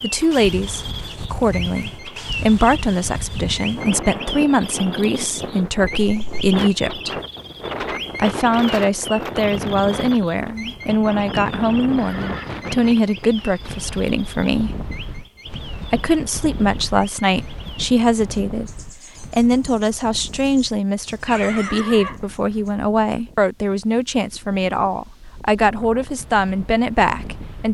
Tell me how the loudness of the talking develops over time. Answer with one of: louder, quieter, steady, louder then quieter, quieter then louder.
steady.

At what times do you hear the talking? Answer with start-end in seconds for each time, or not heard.
0.0-7.2, 8.2-14.8, 15.9-27.6.